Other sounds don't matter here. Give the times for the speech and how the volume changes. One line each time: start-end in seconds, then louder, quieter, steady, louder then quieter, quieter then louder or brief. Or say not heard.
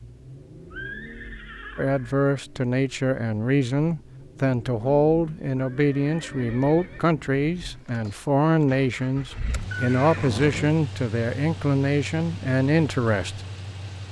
1.8-13.4 steady.